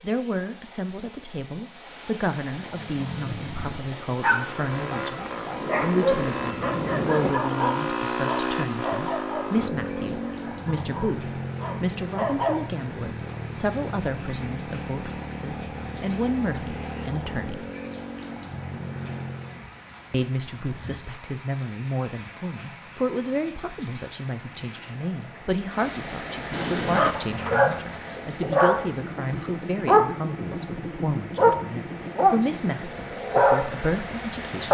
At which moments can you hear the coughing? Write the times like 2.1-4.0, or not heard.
not heard.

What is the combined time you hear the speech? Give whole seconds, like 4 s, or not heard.
32 s.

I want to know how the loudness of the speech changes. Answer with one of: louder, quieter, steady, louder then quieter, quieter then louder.
steady.